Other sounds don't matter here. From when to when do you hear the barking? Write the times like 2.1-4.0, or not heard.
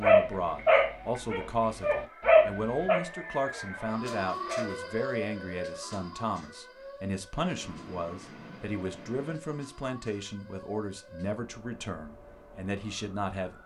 0.0-4.8.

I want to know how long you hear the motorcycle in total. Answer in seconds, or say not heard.
not heard.